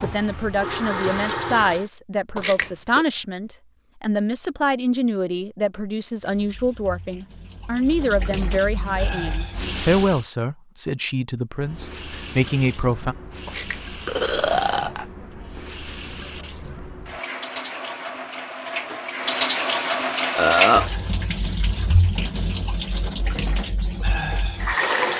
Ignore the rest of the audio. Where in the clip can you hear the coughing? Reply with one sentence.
You can't hear the coughing here.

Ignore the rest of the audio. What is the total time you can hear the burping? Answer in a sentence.
The burping can be heard for 3 seconds in total.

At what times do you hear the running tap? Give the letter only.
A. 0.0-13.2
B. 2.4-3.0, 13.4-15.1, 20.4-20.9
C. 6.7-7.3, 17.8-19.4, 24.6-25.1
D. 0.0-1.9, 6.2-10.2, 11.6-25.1
D.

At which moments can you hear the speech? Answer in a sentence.
You can hear the speech from 0.0 to 13.2 s.